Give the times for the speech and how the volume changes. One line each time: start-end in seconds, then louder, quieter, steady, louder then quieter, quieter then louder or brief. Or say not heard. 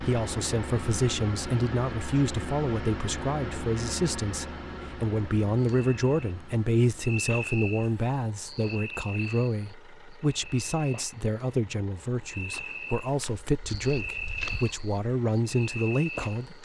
0.0-16.6 steady.